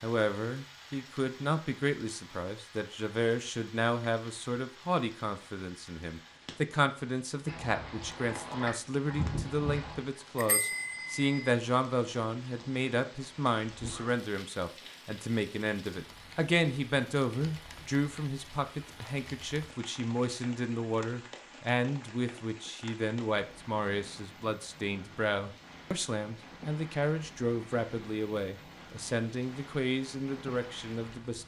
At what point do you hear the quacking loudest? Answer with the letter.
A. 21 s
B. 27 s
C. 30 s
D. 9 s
D.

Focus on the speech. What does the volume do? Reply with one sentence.
The volume of the speech stays about the same.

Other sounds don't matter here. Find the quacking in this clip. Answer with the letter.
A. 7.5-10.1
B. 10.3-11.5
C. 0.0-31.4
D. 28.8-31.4
A.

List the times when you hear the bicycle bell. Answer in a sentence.
You can hear the bicycle bell from 10.3 to 11.5 s.